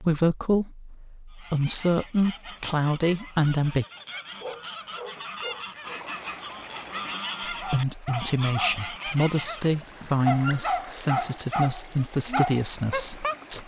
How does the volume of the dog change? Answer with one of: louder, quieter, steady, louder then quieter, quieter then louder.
louder.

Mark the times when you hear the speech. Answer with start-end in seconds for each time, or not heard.
0.0-3.9, 7.5-13.6.